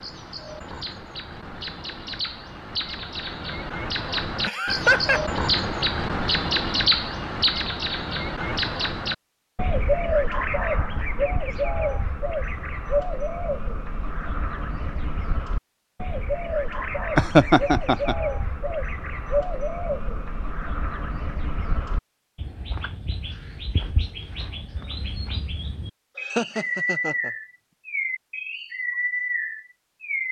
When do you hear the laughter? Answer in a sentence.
You can hear the laughter from 4.5 to 5.2 s, from 17.1 to 18.1 s and from 26.2 to 27.3 s.